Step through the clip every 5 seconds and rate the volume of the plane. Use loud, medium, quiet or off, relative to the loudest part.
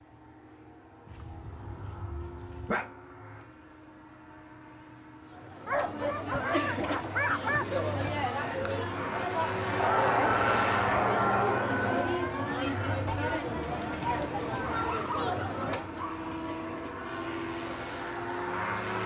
quiet, medium, loud, loud.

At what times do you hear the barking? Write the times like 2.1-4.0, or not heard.
1.1-2.9, 5.7-7.7, 9.8-11.8, 14.7-16.3.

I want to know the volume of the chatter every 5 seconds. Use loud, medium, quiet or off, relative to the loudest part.
off, loud, loud, medium.